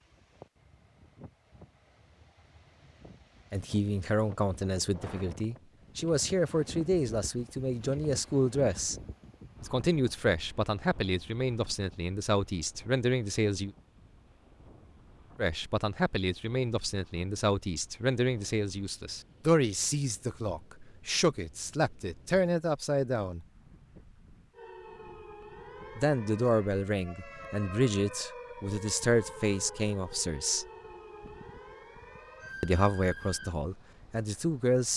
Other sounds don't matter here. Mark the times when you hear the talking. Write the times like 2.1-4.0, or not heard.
3.5-8.9, 9.6-13.7, 15.3-23.4, 25.9-30.6, 32.6-34.9.